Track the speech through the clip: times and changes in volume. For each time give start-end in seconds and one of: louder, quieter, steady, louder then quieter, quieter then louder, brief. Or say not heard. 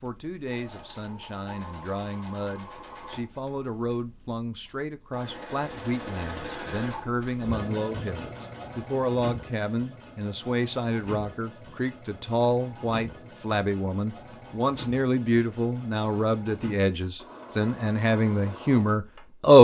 0.0-19.5 louder.